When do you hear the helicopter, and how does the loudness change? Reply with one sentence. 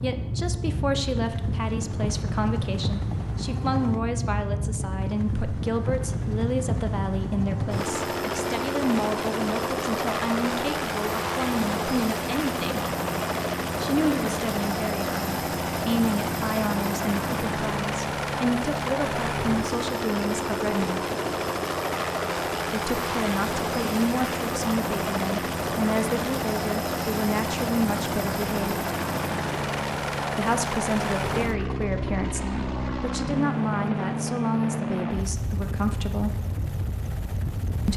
You can hear the helicopter from 0.0 to 37.9 s, at a steady volume.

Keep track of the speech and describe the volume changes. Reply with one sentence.
The loudness of the speech stays about the same.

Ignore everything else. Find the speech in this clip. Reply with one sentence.
You can hear the speech from 0.0 to 12.8 s, from 13.8 to 21.1 s, from 22.7 to 28.8 s and from 30.4 to 36.4 s.